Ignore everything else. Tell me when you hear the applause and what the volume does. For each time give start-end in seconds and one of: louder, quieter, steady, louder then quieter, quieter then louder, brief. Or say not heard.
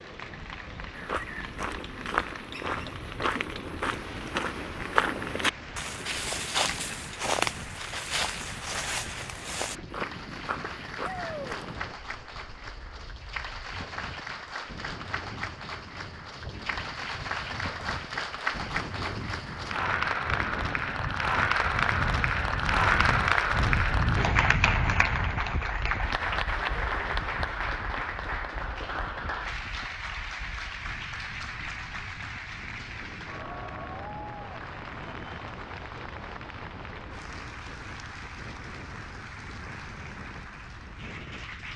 0.0-41.7 louder then quieter.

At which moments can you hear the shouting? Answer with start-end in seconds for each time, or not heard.
11.0-11.6.